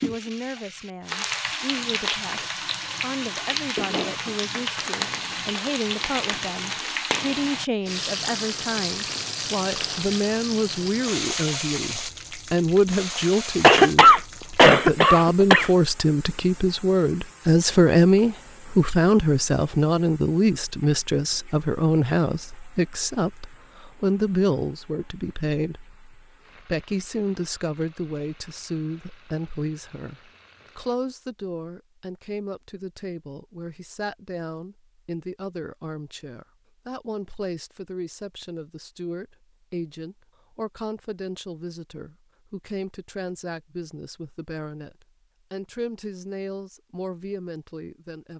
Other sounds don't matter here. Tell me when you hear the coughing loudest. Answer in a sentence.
The volume of the coughing peaks at 14 seconds.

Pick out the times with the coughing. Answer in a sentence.
You can hear the coughing from 13.6 to 15.7 s.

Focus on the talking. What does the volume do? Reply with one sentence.
The loudness of the talking goes up, then down.